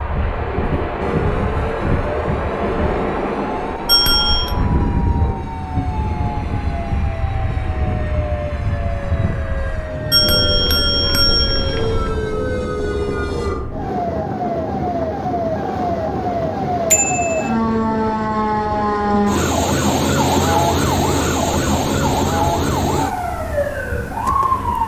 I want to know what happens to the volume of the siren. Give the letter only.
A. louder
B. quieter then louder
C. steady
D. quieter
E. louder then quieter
A.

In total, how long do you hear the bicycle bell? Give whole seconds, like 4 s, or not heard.
3 s.